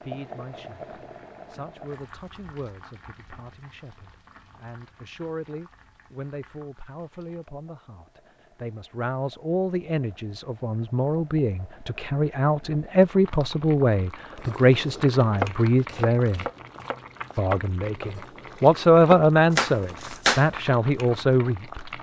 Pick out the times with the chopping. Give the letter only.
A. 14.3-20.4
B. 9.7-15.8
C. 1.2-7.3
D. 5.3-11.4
A.